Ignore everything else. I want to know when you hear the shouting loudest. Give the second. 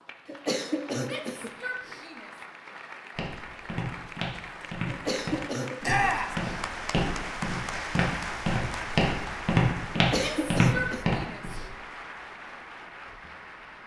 6 s.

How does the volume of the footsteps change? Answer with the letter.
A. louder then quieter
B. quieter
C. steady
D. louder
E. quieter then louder
D.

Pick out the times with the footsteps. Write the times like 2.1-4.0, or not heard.
3.1-11.7.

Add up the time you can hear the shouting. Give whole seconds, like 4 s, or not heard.
3 s.